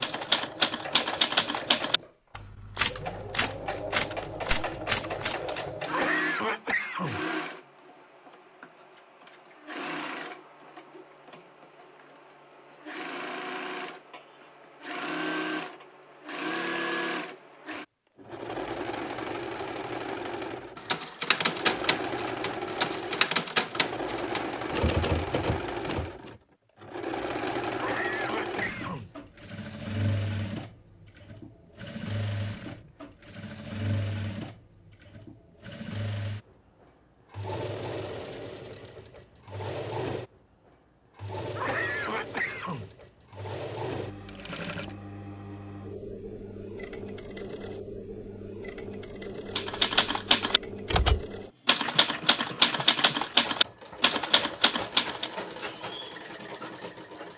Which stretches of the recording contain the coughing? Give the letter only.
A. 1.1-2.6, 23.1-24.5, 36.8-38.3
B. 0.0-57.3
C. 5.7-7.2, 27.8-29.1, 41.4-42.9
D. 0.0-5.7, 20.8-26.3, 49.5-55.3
C.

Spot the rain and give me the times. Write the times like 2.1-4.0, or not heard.
not heard.